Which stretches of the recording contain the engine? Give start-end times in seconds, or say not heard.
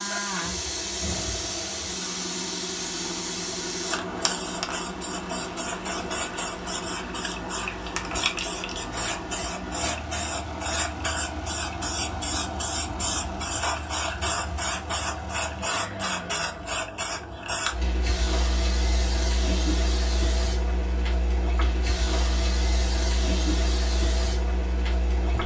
0.0-16.6.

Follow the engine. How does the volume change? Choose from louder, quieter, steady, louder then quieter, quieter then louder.
steady.